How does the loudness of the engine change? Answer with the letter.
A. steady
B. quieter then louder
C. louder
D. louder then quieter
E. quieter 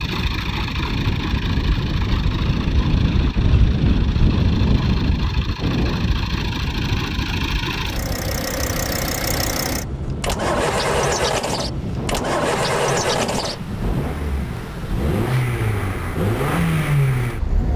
C.